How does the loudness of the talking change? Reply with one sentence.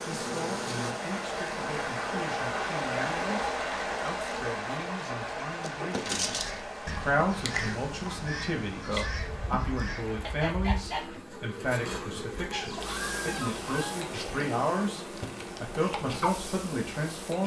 The volume of the talking goes up.